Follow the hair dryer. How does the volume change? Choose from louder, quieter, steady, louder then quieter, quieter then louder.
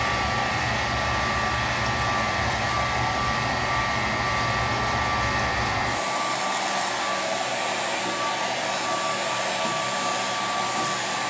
steady.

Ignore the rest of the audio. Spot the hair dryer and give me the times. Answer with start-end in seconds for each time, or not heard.
0.0-11.2.